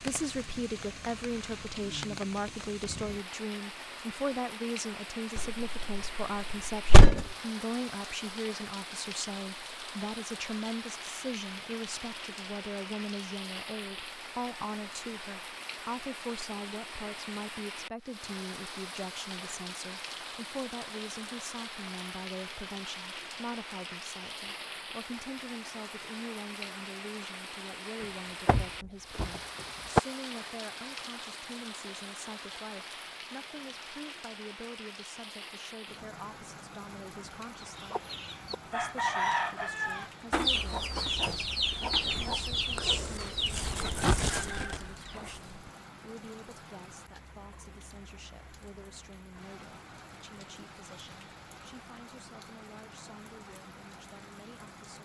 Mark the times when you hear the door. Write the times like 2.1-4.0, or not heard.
5.3-7.2, 28.4-30.0.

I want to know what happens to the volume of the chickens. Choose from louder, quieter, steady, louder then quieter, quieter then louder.
steady.